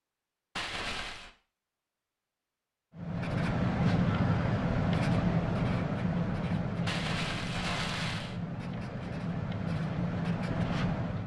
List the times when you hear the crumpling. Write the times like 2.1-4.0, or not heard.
0.6-1.3, 6.8-8.3.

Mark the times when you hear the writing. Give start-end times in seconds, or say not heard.
3.0-11.2.